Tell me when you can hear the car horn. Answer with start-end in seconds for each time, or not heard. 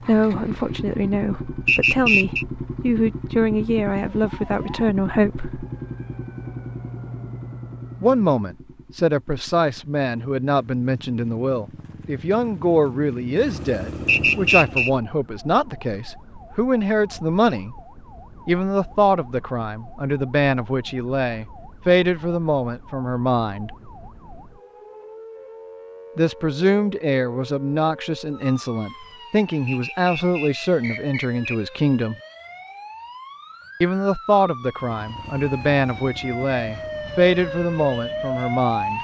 not heard.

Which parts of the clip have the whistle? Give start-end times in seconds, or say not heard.
1.6-2.5, 14.1-14.9, 29.6-31.6.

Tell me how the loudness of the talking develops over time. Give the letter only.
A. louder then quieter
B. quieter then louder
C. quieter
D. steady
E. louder
D.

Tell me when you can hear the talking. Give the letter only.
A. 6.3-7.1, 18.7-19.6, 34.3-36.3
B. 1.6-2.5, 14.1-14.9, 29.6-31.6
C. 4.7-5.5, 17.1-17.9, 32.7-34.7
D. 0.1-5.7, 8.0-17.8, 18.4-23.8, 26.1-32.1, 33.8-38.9
D.